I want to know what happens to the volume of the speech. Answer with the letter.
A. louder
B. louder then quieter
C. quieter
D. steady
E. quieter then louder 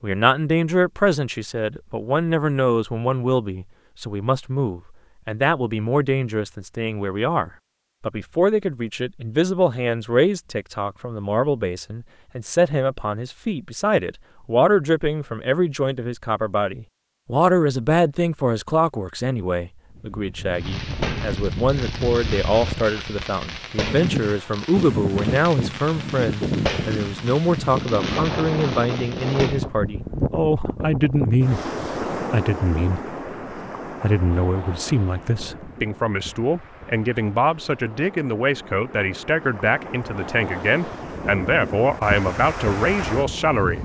D.